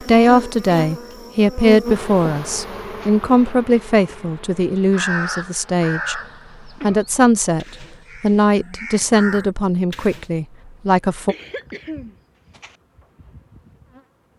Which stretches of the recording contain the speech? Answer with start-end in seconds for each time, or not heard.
0.0-6.2, 6.8-11.3.